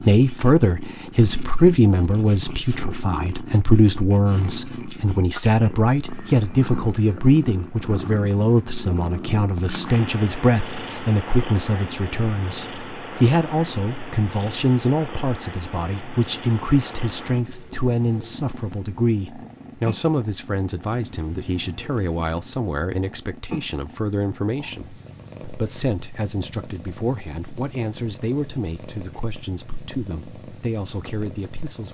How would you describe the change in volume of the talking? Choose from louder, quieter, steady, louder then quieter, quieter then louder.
quieter.